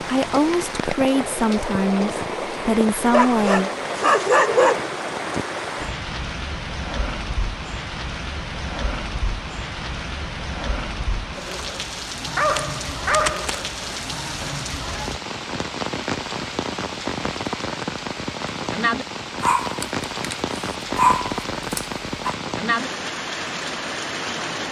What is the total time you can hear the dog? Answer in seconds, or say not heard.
7 s.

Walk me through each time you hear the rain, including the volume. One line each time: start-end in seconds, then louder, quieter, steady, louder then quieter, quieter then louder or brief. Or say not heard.
0.0-24.6 steady.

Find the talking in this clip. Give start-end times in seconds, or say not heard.
0.0-3.7.